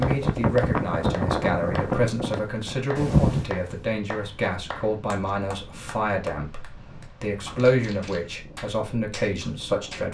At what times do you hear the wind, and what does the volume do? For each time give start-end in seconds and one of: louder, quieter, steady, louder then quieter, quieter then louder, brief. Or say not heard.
0.0-10.0 quieter.